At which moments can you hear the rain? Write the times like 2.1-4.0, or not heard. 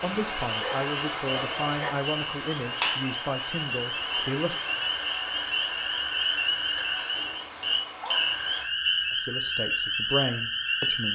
0.0-8.7.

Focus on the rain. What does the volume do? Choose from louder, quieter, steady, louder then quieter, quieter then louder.
quieter.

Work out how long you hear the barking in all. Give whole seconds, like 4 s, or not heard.
3 s.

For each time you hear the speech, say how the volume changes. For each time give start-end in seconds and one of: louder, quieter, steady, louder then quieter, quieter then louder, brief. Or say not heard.
0.0-4.6 steady
9.1-11.0 brief.